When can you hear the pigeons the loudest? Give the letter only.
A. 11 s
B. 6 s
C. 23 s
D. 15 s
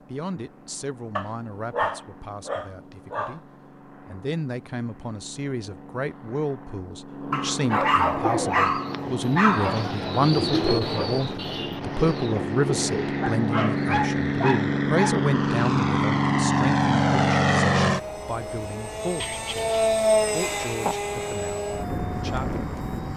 A.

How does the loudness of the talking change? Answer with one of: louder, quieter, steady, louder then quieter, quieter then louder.
louder then quieter.